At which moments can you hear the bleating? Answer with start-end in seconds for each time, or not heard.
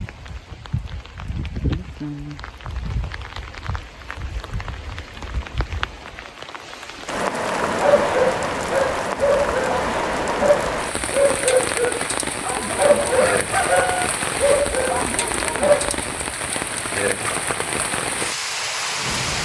not heard.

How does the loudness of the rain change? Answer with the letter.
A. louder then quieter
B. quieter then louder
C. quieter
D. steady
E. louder
E.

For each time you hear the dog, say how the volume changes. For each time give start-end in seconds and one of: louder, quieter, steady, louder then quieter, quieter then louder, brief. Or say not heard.
7.6-16.1 steady.